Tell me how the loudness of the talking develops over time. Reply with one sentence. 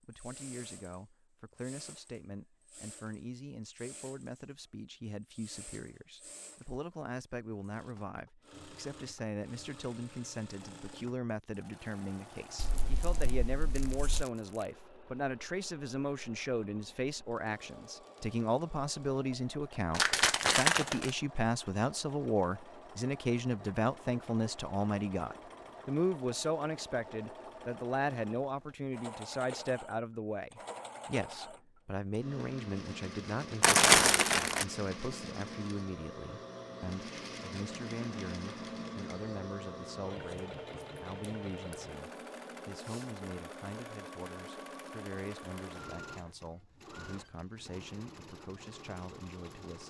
The loudness of the talking goes up, then down.